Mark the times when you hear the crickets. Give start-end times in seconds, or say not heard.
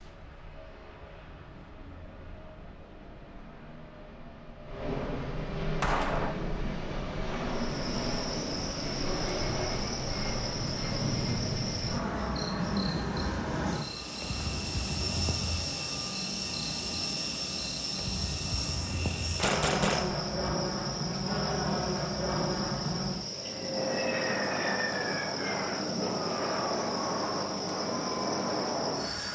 7.5-29.3.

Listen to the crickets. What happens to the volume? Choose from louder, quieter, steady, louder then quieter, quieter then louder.
steady.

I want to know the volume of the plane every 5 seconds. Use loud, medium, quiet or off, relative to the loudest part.
quiet, loud, loud, loud, loud, loud.